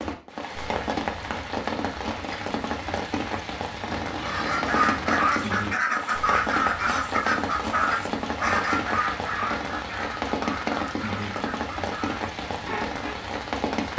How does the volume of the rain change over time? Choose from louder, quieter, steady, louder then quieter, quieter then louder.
steady.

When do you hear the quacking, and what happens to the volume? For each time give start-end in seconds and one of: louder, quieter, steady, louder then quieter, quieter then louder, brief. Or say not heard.
4.2-13.2 quieter.